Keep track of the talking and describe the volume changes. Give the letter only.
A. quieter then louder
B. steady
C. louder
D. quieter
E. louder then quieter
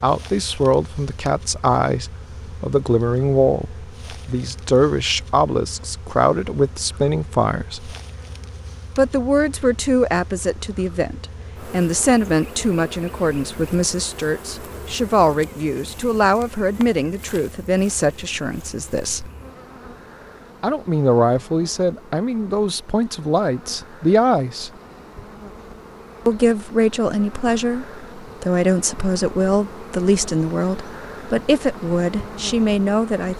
B.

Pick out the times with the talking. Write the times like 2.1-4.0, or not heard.
0.0-8.0, 8.9-19.3, 20.6-24.7, 26.2-33.3.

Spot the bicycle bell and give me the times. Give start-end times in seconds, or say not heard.
not heard.